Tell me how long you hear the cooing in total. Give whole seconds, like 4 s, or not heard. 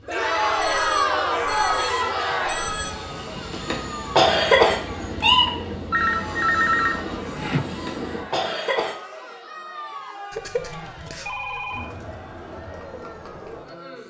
not heard.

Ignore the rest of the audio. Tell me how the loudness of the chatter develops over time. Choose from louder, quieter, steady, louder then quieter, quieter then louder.
quieter.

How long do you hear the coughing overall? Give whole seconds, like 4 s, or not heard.
3 s.